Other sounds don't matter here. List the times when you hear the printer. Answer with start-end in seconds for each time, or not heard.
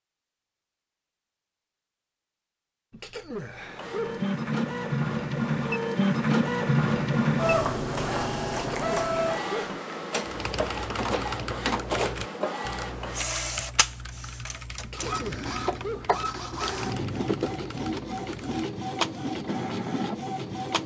3.5-20.8.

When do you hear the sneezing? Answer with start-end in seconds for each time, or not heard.
2.9-4.2, 8.5-9.8, 14.8-16.1.